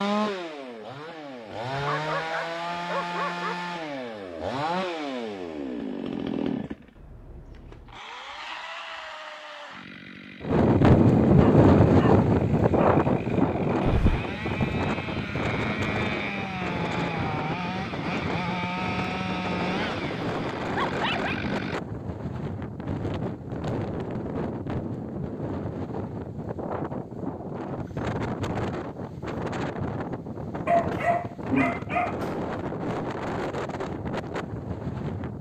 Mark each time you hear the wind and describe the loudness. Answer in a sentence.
You can hear the wind from 10.4 to 35.3 s, getting quieter.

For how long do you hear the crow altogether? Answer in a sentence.
You can't hear the crow here.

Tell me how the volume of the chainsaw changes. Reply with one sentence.
The loudness of the chainsaw goes down, then up.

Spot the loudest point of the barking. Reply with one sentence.
The volume of the barking peaks at 31 seconds.